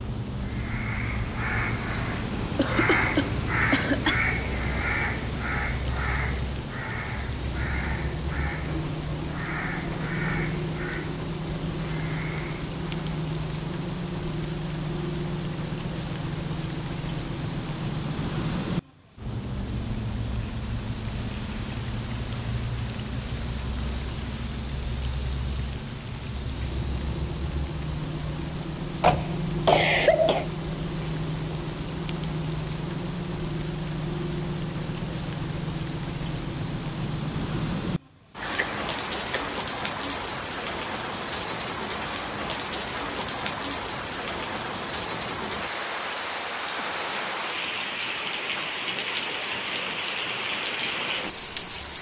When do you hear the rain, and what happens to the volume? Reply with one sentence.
You can hear the rain from 0.0 to 51.9 s, at a steady volume.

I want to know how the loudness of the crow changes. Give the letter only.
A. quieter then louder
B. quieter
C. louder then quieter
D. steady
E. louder
B.